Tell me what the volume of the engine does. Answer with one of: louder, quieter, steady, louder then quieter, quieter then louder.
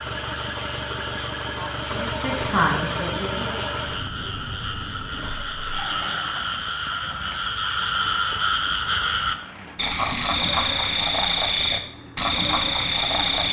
quieter.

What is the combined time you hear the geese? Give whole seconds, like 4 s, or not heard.
not heard.